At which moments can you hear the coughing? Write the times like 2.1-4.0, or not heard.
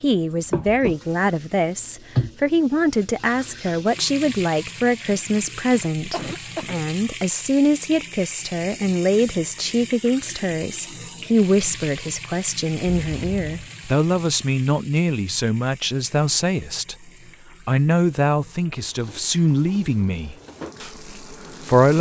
6.1-6.8, 12.8-13.7.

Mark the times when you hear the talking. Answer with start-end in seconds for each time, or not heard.
0.0-21.9.